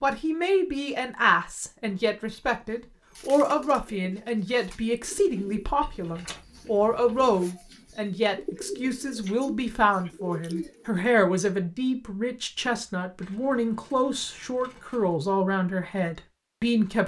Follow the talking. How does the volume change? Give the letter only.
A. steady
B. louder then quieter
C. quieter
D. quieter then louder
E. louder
A.